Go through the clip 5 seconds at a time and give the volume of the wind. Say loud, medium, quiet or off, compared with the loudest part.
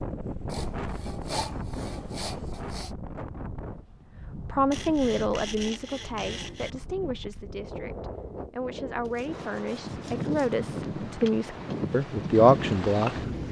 medium, medium, loud.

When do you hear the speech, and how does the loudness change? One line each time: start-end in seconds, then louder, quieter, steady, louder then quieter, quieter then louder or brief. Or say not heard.
4.3-13.4 quieter then louder.